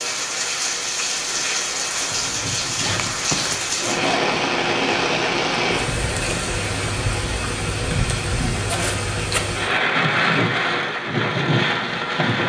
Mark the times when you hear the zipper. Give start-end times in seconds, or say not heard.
2.8-4.4, 8.7-9.6.